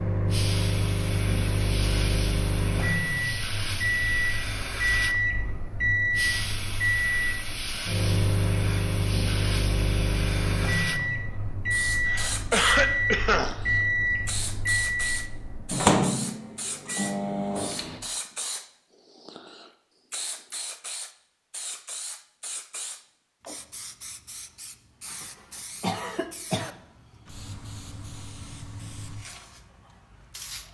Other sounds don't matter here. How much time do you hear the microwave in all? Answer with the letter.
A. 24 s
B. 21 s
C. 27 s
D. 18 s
D.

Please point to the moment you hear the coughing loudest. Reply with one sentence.
The volume of the coughing peaks at 13 seconds.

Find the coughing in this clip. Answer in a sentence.
You can hear the coughing from 12.1 to 13.6 s and from 25.1 to 26.7 s.